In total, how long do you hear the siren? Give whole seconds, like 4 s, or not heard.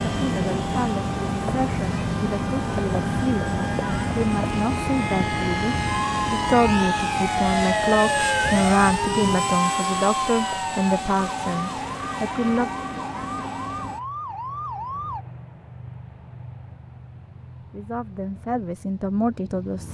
12 s.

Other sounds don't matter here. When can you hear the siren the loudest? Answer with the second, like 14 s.
8 s.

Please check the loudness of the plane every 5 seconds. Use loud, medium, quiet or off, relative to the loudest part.
loud, loud, medium, quiet.